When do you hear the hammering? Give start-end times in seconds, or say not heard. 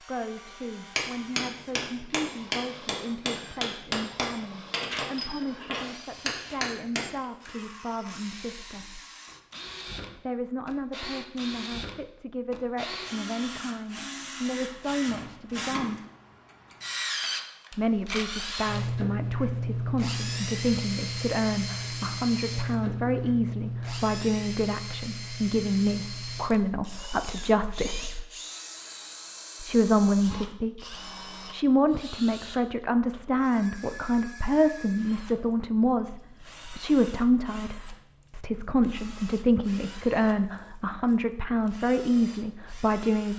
0.9-7.5.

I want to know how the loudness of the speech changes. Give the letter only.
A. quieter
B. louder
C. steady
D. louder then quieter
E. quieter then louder
B.